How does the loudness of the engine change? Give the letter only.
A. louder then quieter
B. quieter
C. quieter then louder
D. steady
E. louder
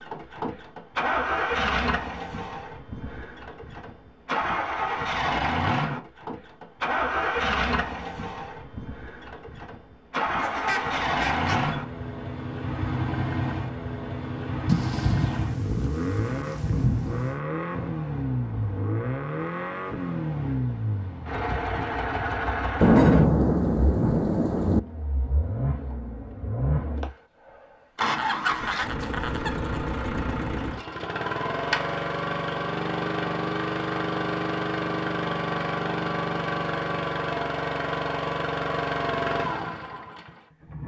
D.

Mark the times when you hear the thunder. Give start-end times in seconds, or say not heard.
14.7-17.4, 22.8-24.8.